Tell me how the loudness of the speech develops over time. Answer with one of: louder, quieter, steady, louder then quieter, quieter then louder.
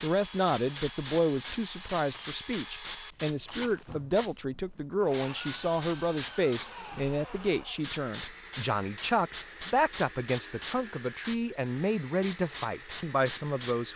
steady.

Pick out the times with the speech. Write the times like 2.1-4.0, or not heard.
0.0-13.9.